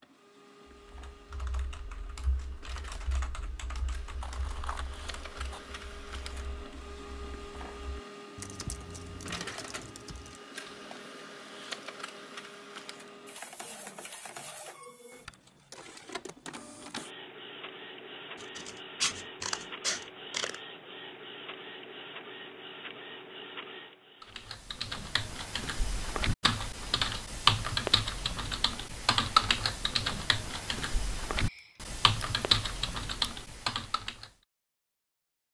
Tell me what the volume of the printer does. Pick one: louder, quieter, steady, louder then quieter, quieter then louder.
louder.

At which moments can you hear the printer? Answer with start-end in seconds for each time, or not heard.
0.0-24.6.